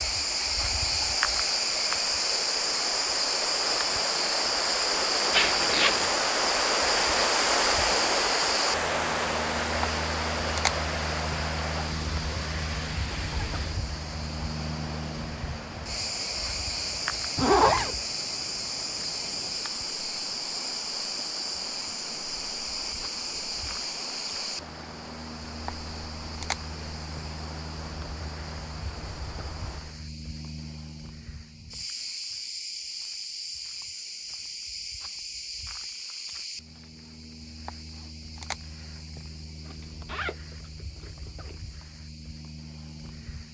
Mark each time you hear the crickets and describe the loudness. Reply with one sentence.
You can hear the crickets from 0.0 to 43.4 s, getting quieter.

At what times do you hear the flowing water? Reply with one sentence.
You can hear the flowing water from 0.0 to 30.0 s.